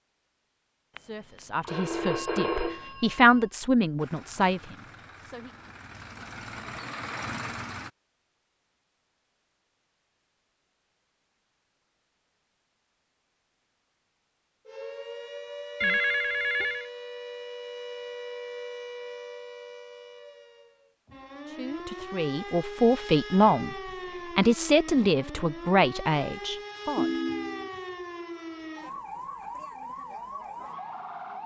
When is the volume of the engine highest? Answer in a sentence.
The loudest moment of the engine is at 7 seconds.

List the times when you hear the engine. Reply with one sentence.
The engine can be heard from 4.0 to 7.9 s.